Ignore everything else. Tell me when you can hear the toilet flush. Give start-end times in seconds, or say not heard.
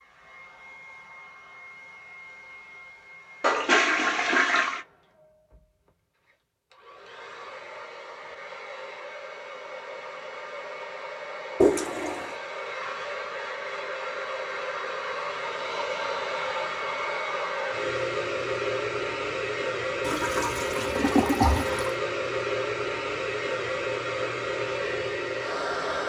3.4-4.8, 11.6-12.3, 20.1-21.9.